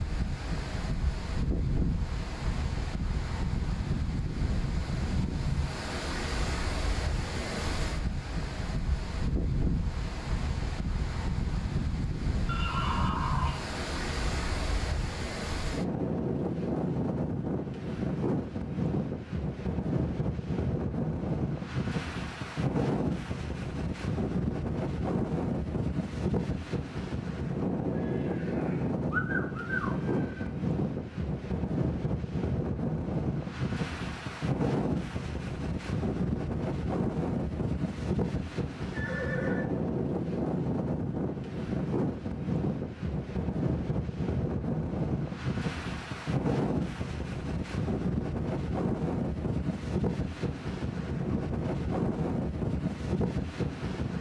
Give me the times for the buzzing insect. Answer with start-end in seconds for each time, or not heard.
not heard.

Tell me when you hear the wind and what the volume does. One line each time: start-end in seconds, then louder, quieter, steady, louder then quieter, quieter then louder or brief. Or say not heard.
0.0-54.1 steady.